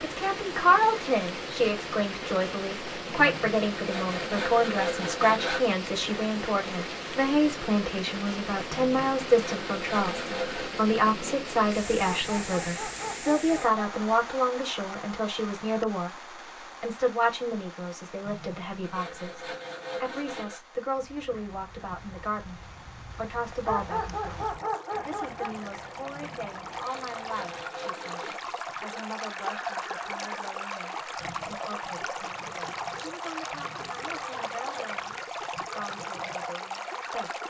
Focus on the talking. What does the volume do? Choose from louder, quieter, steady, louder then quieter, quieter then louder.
quieter.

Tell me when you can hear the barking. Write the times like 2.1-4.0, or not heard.
12.2-13.8, 23.6-25.6.